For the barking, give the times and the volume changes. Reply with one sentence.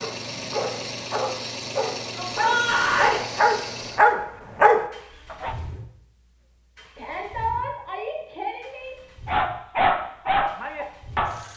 The barking can be heard from 0.0 to 5.5 s, getting louder; and briefly from 9.2 to 11.3 s.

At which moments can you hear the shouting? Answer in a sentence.
You can hear the shouting from 2.1 to 3.2 s and from 7.0 to 8.9 s.